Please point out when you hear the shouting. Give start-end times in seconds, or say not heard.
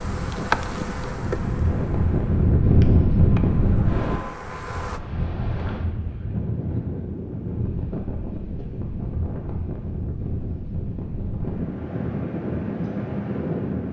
not heard.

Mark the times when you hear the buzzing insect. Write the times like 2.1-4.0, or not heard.
0.0-5.0.